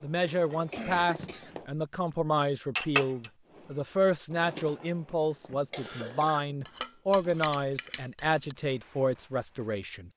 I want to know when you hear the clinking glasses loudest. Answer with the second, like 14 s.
3 s.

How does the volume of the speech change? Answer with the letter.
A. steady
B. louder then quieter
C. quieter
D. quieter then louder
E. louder
A.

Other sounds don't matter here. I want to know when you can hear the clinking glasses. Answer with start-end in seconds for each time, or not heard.
2.8-3.3, 6.7-8.6.